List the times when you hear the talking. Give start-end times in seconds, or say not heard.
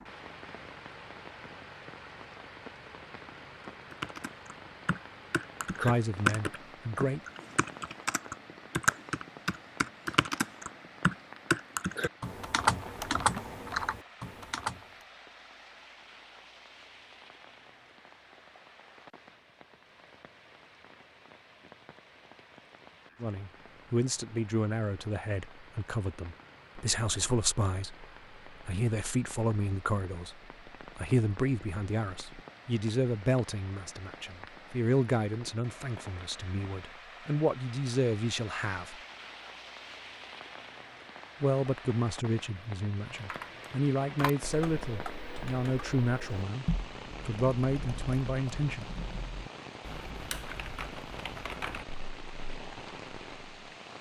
5.7-7.2, 23.2-39.0, 41.4-46.6, 47.2-48.9.